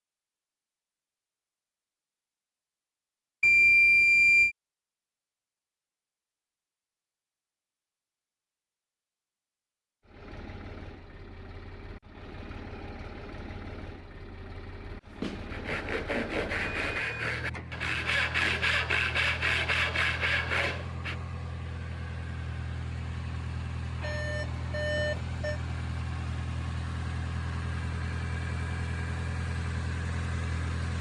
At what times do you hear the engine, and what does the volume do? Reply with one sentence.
The engine can be heard from 10.1 to 30.9 s, getting louder.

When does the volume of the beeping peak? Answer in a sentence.
The volume of the beeping peaks at 4 seconds.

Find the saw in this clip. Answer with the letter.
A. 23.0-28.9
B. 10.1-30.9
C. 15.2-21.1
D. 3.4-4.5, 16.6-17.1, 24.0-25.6
C.